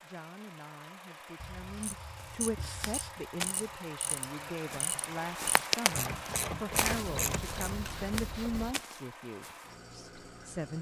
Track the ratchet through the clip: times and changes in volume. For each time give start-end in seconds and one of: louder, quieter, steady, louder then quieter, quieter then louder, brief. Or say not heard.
1.8-8.1 louder.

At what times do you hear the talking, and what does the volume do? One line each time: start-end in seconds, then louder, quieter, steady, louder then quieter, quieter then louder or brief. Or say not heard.
0.0-10.7 louder.